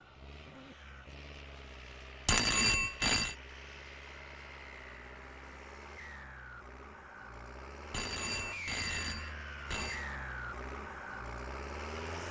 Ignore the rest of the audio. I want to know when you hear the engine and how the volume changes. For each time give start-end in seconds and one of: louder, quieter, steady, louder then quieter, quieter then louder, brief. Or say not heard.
0.0-12.2 louder.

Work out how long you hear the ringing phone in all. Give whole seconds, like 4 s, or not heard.
3 s.